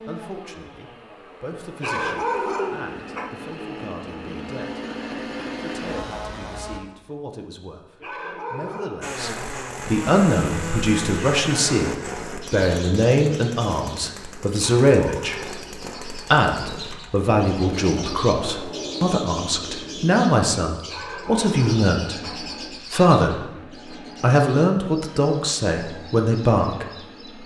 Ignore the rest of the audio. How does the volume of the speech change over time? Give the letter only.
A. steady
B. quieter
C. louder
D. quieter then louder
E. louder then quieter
C.